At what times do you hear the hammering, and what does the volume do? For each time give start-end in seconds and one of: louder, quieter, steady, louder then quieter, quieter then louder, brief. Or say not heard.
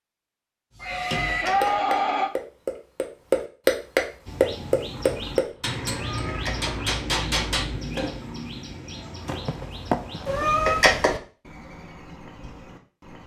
0.8-8.2 louder then quieter.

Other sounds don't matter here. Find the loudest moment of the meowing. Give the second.
11 s.